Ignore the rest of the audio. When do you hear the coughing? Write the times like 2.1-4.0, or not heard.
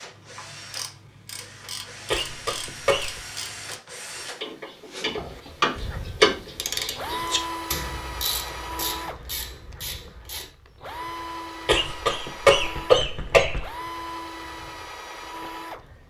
2.1-3.2, 11.7-13.7.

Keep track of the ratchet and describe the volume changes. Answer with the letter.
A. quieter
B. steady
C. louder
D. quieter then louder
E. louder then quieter
E.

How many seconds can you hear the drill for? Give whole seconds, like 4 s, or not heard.
16 s.